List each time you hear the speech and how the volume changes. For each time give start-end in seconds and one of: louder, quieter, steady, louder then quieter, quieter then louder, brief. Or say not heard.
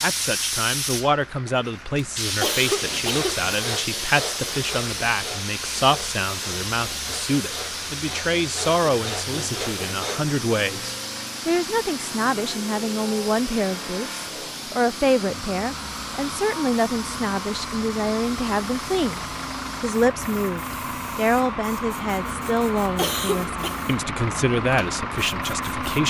0.0-26.0 steady.